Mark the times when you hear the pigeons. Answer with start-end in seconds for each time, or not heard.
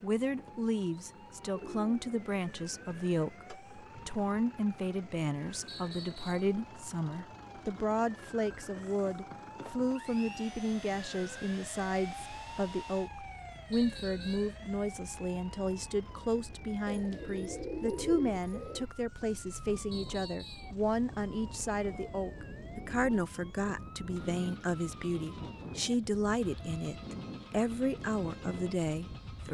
1.5-3.0, 16.9-18.9.